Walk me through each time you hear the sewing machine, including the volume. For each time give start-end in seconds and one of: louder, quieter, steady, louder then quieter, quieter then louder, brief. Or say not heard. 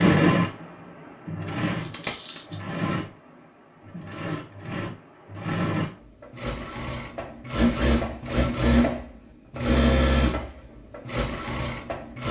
0.0-12.2 louder.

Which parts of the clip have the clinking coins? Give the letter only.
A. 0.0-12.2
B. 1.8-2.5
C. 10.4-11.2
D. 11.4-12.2
B.